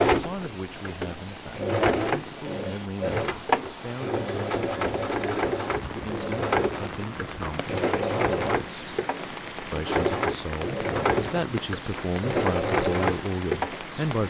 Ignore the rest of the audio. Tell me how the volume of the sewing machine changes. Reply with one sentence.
The volume of the sewing machine stays about the same.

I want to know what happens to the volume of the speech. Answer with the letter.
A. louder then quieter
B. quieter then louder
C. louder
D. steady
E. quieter
C.